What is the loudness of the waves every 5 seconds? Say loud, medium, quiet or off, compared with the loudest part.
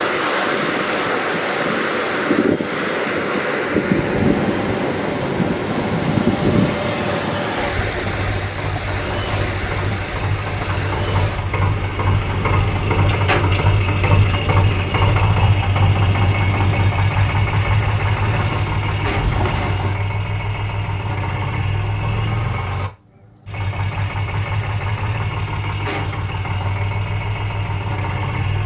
loud, loud, medium, medium, off, off.